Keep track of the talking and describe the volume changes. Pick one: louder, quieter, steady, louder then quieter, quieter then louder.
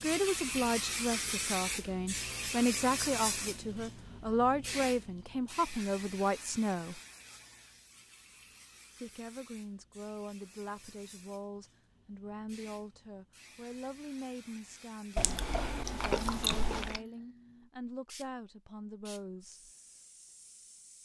quieter.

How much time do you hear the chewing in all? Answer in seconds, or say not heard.
2 s.